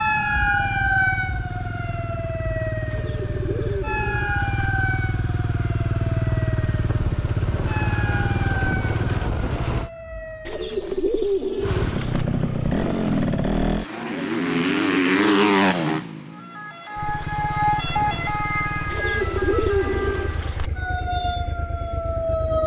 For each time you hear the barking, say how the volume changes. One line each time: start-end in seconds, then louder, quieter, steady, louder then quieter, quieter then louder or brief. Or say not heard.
not heard.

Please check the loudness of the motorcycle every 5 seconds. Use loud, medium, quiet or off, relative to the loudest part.
medium, loud, loud, loud, quiet.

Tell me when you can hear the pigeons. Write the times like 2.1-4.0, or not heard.
2.9-4.5, 10.4-12.2, 18.9-20.7.